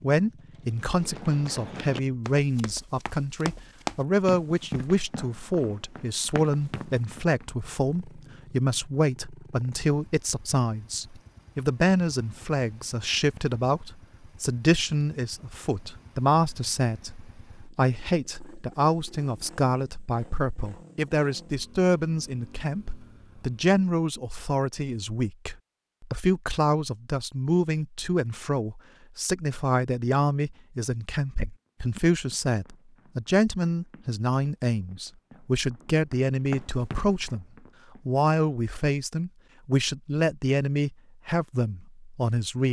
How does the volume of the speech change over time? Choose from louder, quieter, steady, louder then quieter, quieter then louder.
steady.